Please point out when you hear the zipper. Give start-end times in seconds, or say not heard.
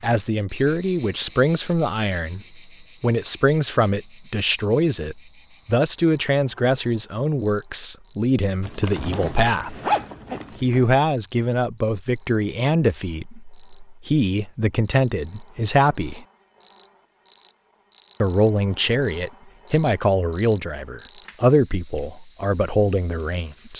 8.6-10.9.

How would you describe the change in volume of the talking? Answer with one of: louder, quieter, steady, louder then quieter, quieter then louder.
steady.